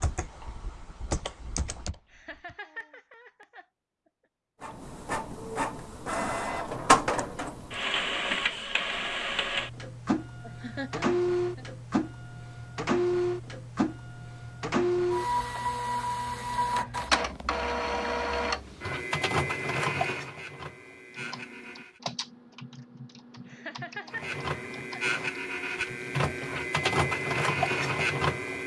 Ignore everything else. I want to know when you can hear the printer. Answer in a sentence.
You can hear the printer from 4.6 to 22.0 s and from 24.1 to 28.6 s.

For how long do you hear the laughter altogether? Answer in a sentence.
The laughter can be heard for 4 seconds in total.